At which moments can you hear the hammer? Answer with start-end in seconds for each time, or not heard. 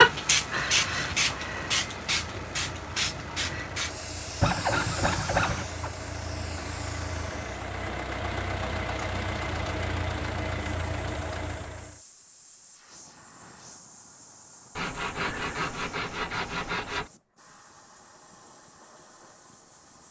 not heard.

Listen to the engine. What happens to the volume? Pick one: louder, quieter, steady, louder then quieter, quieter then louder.
louder.